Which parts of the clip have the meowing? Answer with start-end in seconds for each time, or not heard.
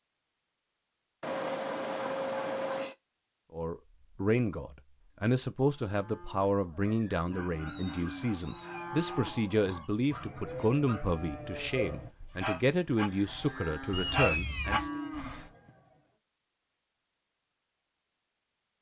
1.2-3.0, 7.7-8.9, 13.9-14.9.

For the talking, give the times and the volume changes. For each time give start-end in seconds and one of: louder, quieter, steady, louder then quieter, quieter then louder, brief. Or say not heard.
3.5-14.9 steady.